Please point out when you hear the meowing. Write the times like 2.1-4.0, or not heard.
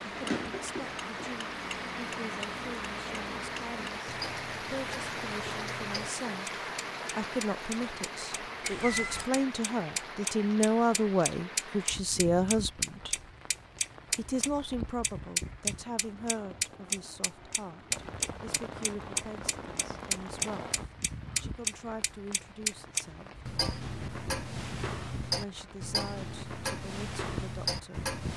8.6-9.3.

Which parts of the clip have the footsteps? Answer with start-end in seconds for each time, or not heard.
not heard.